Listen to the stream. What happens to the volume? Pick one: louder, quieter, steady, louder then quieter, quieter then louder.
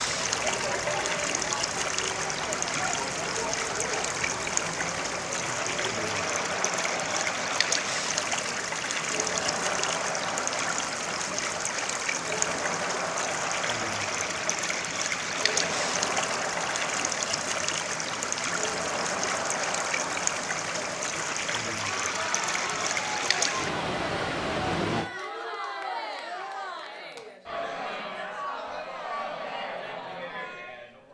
steady.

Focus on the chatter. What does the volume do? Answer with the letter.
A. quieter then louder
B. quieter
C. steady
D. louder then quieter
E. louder
C.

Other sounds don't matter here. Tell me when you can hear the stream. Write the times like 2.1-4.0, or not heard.
0.0-25.1.